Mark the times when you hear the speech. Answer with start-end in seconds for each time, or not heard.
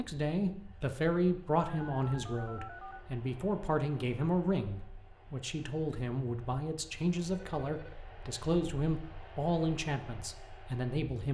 0.0-11.2.